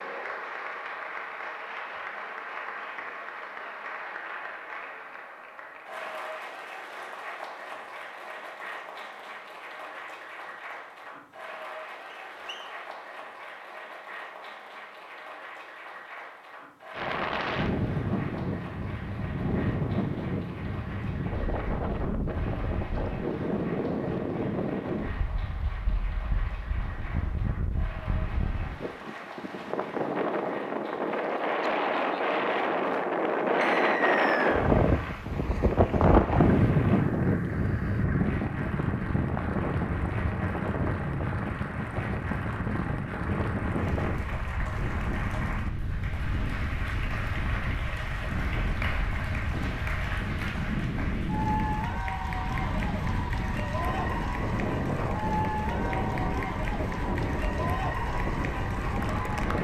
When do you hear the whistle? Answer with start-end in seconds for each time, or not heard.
12.1-12.7, 33.6-34.6.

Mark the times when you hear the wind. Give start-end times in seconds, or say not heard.
16.9-59.5.